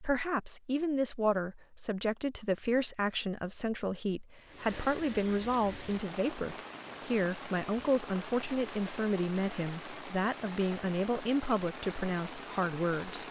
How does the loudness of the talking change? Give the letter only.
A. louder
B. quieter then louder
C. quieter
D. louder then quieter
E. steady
E.